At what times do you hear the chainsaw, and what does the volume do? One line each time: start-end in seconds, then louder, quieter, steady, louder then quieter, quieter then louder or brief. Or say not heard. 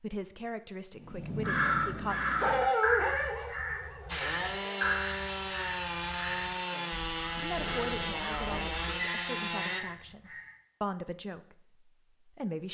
4.0-9.8 steady.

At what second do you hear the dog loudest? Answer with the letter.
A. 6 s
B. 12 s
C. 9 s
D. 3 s
D.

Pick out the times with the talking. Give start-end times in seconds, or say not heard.
0.0-2.2, 6.7-12.7.